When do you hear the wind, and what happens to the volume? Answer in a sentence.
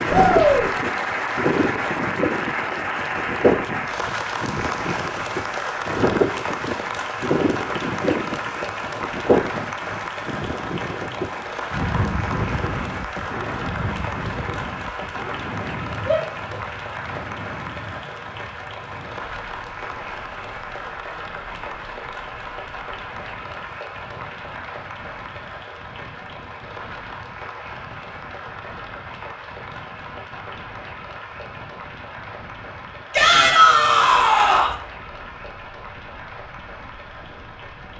You can hear the wind from 0.0 to 37.9 s, getting quieter.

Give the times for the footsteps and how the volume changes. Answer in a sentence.
The footsteps can't be heard in this clip.